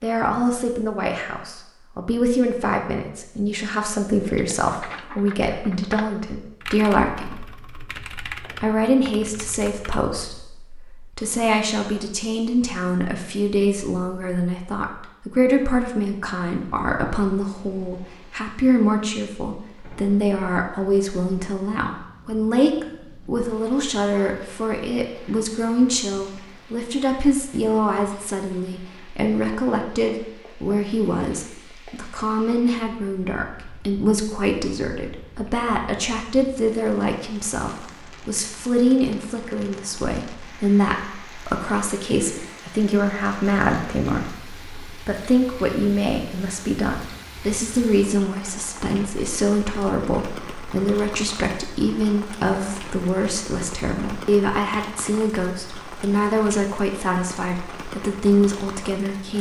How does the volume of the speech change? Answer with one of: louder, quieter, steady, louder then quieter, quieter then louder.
steady.